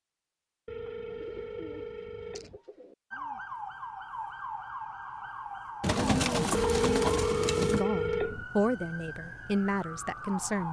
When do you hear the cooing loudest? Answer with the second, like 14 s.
6 s.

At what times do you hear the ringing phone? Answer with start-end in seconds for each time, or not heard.
0.7-2.6, 6.5-8.4.